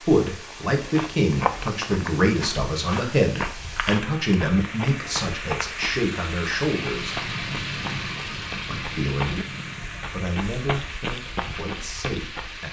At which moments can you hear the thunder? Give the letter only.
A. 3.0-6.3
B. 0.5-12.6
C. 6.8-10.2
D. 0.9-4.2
C.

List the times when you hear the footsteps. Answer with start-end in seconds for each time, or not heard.
0.5-12.6.